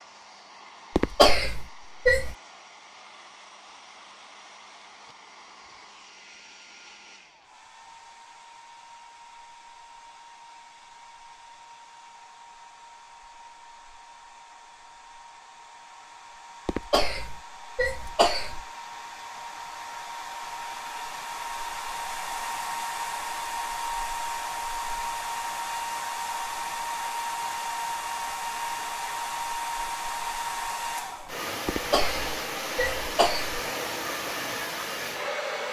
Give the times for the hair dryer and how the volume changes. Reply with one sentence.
The hair dryer can be heard from 0.0 to 35.6 s, getting louder.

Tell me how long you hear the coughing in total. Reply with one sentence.
The coughing can be heard for 5 seconds in total.